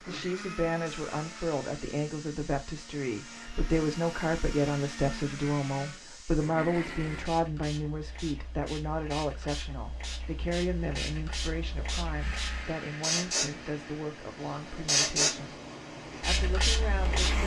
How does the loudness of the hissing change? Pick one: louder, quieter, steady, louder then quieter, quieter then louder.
louder.